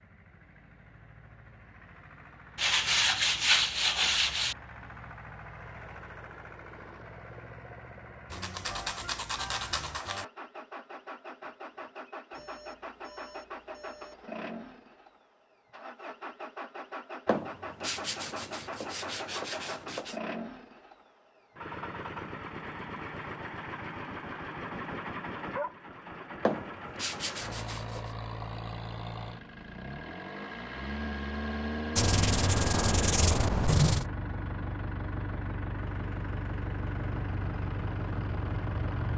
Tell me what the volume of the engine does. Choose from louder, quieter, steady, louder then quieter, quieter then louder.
louder.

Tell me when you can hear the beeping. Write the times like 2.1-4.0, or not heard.
12.3-14.2.